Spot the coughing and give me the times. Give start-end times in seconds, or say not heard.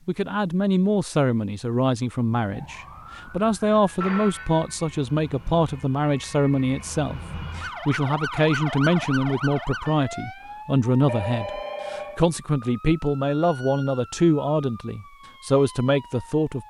not heard.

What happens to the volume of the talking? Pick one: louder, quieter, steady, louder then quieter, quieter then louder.
steady.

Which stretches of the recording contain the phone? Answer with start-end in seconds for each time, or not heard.
4.0-4.8, 11.1-12.2.